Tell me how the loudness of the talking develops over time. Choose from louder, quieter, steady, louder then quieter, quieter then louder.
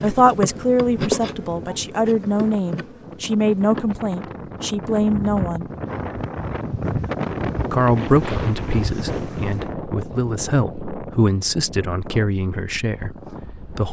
quieter.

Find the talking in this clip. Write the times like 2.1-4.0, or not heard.
0.0-5.7, 7.7-13.8.